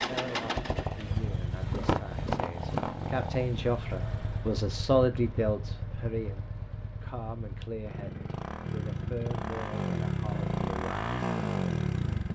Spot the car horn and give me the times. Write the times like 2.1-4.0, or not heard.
not heard.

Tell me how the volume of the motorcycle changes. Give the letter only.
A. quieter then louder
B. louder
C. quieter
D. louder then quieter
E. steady
A.